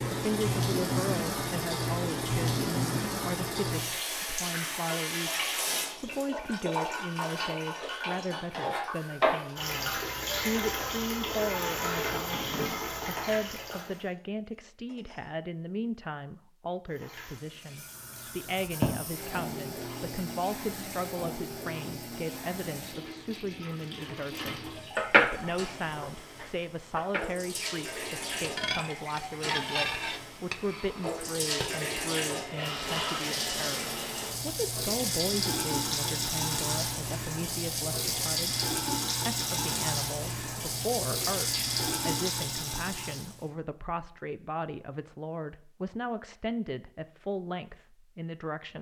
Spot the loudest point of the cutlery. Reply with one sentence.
The loudest moment of the cutlery is at 25 seconds.